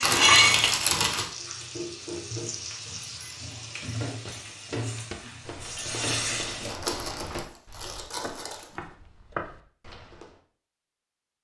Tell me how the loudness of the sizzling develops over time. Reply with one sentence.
The loudness of the sizzling goes down, then up.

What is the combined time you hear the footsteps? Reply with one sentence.
The footsteps can be heard for 6 seconds in total.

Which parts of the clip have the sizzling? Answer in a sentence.
The sizzling can be heard from 0.0 to 6.8 s.